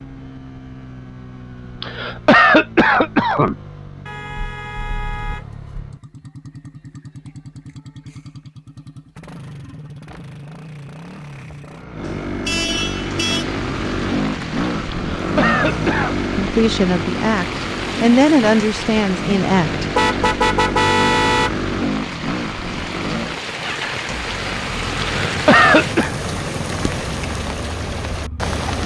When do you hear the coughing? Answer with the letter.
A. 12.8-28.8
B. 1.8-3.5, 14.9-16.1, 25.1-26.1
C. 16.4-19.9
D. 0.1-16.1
B.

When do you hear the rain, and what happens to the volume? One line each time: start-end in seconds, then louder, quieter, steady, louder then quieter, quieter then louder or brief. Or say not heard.
12.8-28.8 louder.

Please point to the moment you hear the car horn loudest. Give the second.
21 s.